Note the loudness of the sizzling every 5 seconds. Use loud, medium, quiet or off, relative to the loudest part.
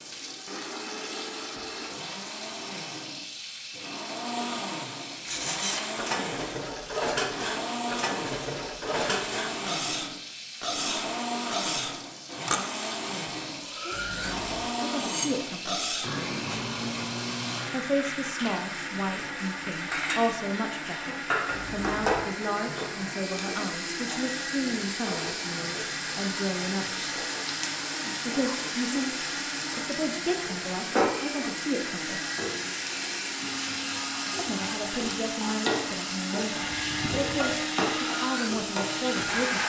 medium, medium, medium, medium, loud, loud, loud, loud.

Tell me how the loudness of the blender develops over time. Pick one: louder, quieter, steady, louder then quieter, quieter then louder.
steady.